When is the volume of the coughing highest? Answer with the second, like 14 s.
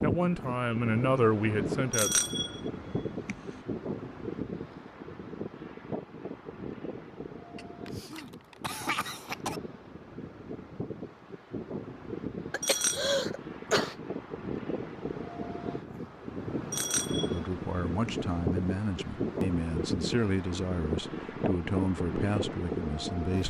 13 s.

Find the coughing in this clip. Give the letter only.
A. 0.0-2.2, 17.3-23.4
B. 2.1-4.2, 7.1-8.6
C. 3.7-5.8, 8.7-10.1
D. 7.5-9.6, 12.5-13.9
D.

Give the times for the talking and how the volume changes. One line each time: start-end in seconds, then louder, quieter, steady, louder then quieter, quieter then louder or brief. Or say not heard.
0.0-2.2 brief
17.3-23.4 steady.